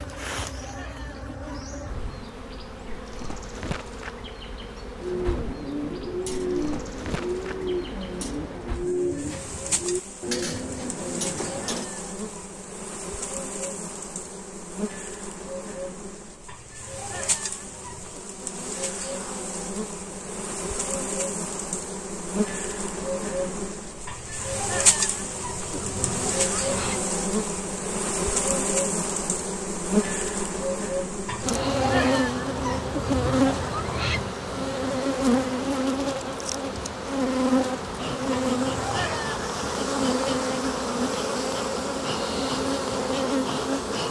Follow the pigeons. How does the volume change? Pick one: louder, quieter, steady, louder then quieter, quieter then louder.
steady.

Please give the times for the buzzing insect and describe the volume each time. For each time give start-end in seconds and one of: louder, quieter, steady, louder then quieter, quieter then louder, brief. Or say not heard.
0.0-44.0 louder.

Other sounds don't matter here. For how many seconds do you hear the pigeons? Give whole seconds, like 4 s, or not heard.
7 s.